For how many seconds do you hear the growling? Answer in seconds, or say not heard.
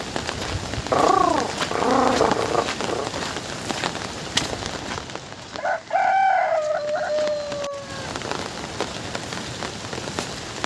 2 s.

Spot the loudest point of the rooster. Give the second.
6 s.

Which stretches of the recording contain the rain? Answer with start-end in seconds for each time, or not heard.
0.0-10.6.